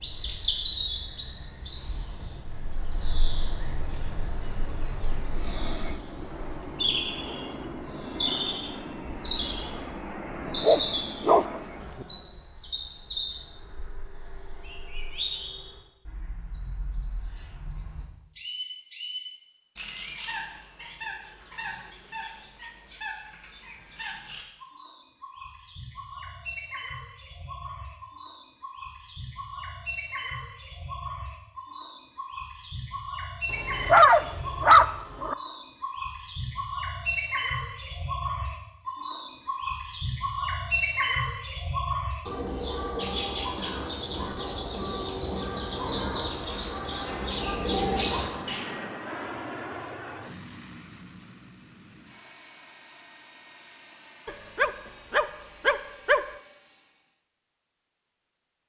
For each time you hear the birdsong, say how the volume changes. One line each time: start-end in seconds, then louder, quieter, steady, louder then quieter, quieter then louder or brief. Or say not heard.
0.0-48.6 quieter then louder.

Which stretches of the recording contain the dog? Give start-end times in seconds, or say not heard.
10.4-12.1, 33.5-35.4, 54.2-56.2.